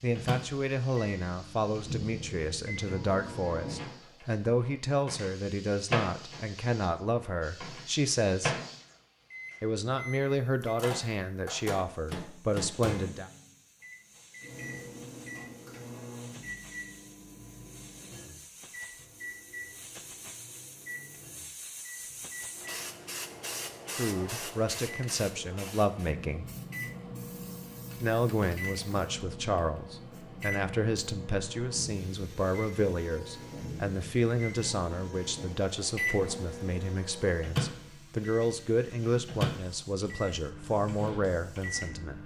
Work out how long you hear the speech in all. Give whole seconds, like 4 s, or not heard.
29 s.